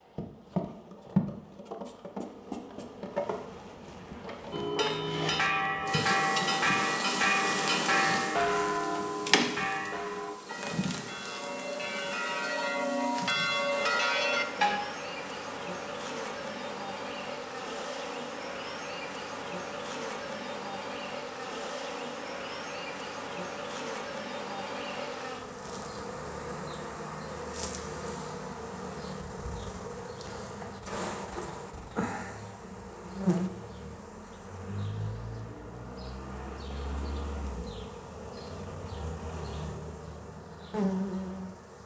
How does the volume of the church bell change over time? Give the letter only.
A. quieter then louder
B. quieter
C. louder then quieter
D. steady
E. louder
A.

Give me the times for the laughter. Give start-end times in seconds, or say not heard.
not heard.